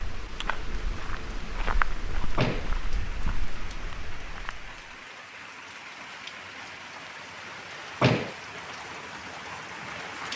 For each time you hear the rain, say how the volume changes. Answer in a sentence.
The rain can be heard from 0.0 to 10.3 s, getting louder.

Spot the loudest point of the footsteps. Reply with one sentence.
The volume of the footsteps peaks at 2 seconds.